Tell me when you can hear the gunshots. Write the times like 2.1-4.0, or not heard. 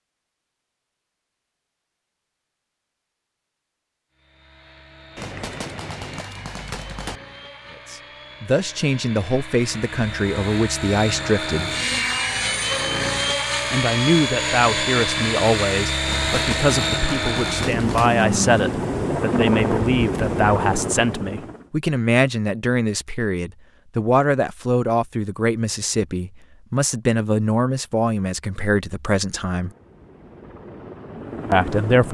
5.2-7.2, 16.1-18.1.